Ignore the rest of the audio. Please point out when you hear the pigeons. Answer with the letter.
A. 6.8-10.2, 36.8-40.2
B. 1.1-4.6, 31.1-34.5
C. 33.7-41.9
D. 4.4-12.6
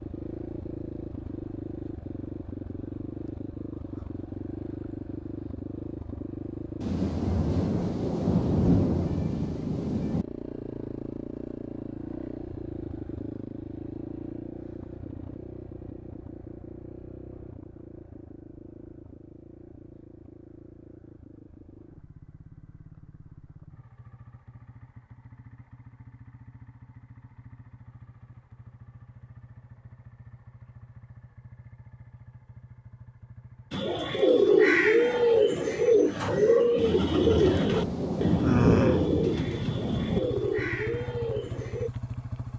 C.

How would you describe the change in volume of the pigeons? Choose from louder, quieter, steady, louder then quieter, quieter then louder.
quieter.